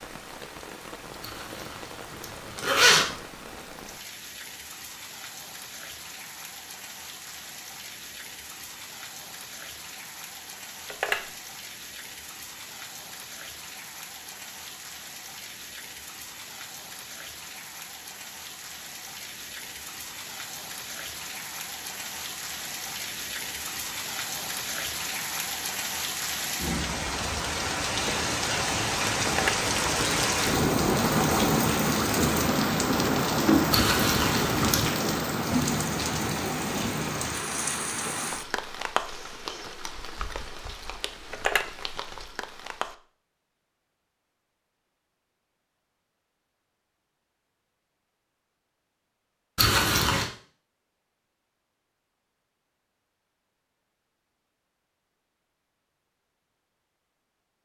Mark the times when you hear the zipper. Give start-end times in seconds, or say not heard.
1.2-3.0, 33.7-34.9, 49.5-50.2.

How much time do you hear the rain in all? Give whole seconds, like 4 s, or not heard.
43 s.